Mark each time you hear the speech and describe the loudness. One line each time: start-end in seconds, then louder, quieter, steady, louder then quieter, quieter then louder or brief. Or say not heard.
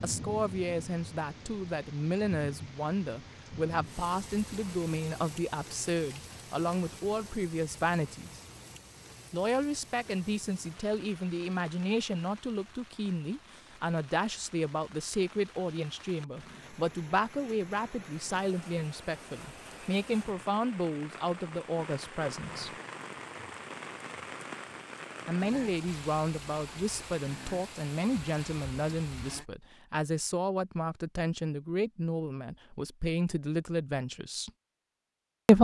0.0-8.4 steady
9.3-22.7 steady
25.2-34.5 steady.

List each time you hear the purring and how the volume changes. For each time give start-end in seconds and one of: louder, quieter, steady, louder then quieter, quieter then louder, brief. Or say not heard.
not heard.